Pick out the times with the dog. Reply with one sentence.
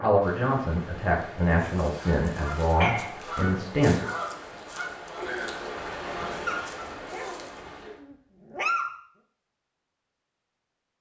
You can hear the dog from 2.8 to 3.2 s and from 6.5 to 9.0 s.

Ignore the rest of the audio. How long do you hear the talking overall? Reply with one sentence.
You can hear the talking for 4 seconds altogether.